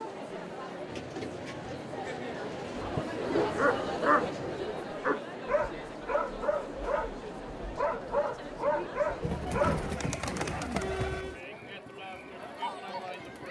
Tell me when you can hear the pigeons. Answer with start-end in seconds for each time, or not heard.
0.8-2.9, 9.2-11.4.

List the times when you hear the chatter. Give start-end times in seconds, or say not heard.
0.0-13.4.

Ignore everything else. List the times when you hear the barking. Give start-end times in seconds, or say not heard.
2.8-9.9.